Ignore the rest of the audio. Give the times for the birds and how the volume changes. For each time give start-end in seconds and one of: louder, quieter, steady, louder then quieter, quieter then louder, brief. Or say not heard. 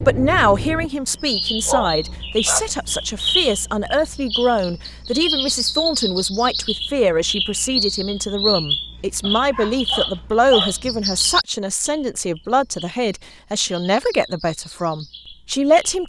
0.0-16.0 quieter.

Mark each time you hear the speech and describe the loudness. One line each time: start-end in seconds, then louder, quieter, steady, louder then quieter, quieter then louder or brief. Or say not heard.
0.1-16.0 steady.